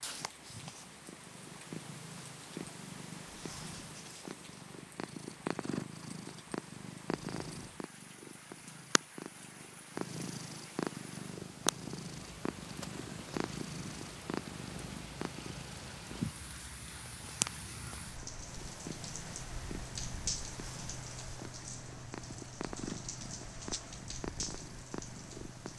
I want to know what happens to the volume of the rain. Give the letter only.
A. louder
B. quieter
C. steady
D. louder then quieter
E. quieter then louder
A.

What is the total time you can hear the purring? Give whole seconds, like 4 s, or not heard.
26 s.